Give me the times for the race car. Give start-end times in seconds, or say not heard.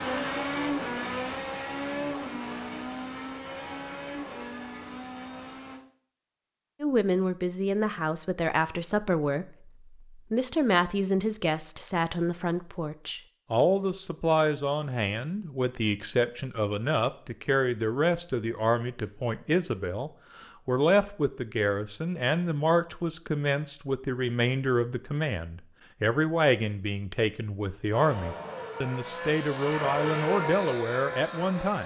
0.0-5.8, 27.9-31.8.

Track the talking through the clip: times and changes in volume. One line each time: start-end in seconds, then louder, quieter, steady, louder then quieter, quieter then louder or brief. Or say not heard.
6.8-31.8 steady.